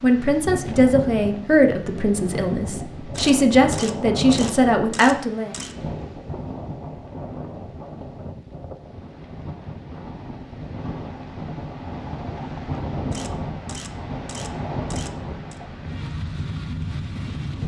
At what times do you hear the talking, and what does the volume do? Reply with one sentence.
The talking can be heard from 0.0 to 5.5 s, getting quieter then louder.